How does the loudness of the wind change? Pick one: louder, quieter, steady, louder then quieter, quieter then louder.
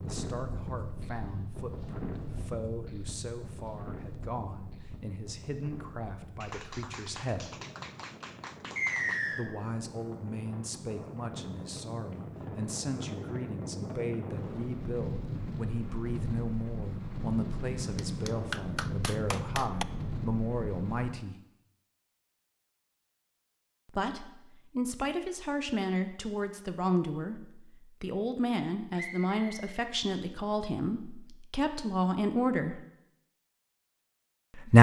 quieter then louder.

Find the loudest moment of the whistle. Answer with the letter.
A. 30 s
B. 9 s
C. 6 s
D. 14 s
B.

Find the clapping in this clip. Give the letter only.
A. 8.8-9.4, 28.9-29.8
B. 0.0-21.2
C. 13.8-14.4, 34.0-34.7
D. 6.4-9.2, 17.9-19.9
D.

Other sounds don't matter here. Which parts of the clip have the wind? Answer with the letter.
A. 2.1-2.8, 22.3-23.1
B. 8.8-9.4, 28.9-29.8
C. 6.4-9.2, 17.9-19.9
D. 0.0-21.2
D.